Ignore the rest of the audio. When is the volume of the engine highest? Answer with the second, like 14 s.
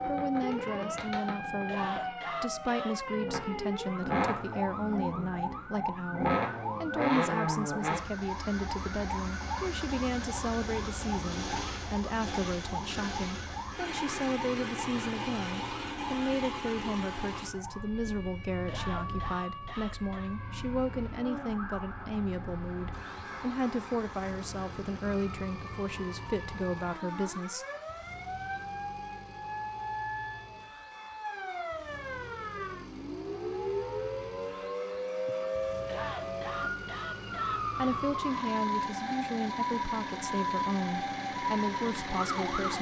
7 s.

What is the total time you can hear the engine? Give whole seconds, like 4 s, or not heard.
43 s.